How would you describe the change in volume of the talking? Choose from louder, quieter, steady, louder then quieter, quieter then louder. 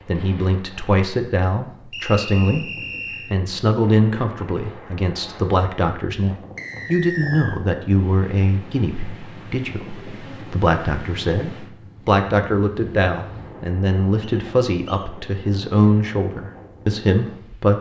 steady.